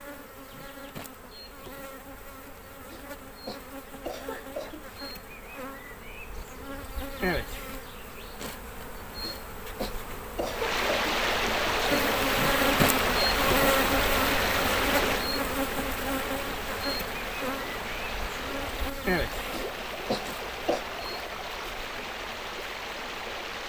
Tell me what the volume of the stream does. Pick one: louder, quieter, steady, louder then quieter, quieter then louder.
quieter.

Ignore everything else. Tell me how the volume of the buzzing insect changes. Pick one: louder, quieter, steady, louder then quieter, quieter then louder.
louder then quieter.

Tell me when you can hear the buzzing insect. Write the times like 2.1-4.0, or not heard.
0.0-23.6.